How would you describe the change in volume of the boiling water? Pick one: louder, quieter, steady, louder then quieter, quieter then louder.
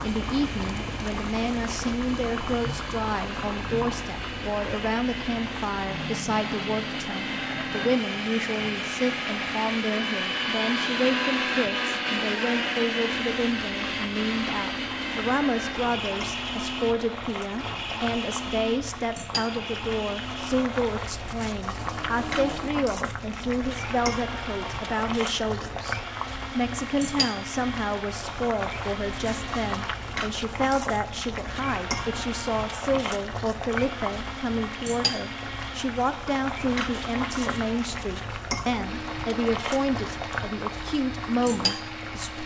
quieter then louder.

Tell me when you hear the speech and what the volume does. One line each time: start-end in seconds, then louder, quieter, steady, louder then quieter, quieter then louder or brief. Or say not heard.
0.0-42.4 steady.